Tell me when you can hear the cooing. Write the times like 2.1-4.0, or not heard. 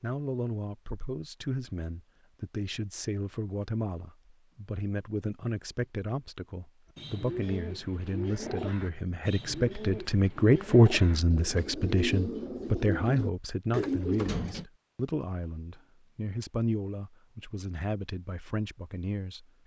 6.8-14.7.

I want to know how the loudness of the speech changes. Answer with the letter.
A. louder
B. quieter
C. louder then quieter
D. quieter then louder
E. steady
C.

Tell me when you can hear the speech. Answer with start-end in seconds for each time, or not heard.
0.0-19.4.